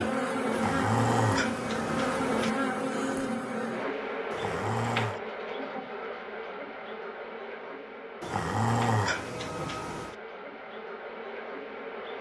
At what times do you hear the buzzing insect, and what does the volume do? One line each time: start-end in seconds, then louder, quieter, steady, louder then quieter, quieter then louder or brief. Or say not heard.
0.0-12.1 quieter.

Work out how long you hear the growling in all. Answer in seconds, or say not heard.
5 s.